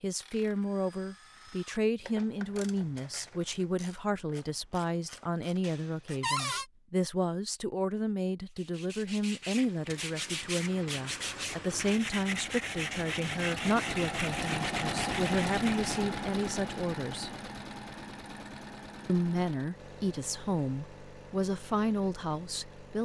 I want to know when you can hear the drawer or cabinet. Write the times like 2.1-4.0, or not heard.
6.2-6.7.